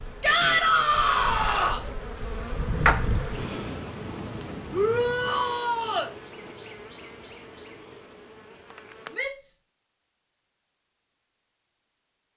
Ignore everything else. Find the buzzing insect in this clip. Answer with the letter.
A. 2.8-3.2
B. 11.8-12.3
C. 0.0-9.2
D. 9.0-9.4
C.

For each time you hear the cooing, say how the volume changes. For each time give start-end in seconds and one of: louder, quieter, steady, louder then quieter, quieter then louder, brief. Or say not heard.
not heard.